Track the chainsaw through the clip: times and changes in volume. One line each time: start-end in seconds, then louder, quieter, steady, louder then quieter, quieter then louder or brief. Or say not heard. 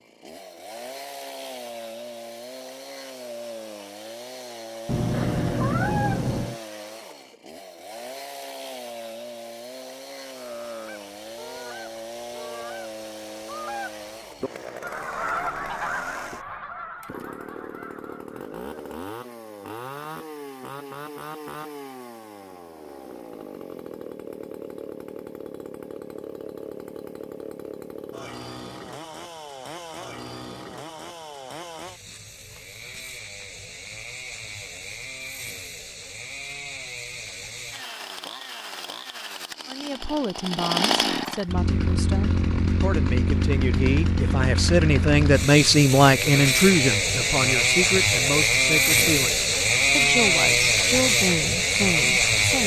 0.0-52.6 louder.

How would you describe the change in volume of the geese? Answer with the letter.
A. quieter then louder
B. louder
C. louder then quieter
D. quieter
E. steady
C.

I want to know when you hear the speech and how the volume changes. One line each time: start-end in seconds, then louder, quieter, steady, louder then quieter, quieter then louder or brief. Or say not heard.
39.6-52.6 louder then quieter.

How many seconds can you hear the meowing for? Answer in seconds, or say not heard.
2 s.